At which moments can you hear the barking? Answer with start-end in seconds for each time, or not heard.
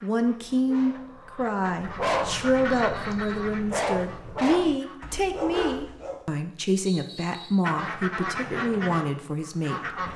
0.2-6.2.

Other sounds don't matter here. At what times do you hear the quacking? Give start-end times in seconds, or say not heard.
0.0-5.2, 7.6-10.1.